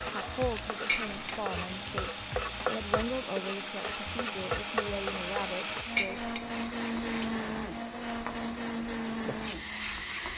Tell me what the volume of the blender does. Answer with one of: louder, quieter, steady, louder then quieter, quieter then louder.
louder.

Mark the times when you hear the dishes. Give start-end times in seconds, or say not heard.
0.8-1.4, 6.0-6.5.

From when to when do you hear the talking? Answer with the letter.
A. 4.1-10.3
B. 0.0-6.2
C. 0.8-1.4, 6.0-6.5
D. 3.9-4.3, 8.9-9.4
B.